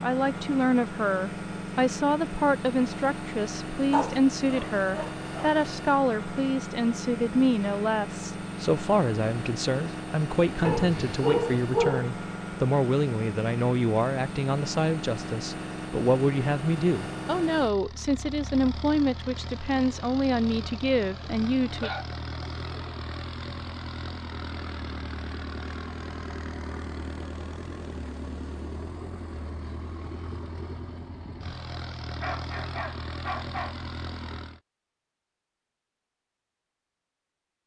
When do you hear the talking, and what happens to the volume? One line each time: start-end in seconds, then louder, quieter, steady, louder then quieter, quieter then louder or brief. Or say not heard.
0.0-21.9 steady.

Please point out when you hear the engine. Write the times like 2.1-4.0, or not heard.
0.0-34.6.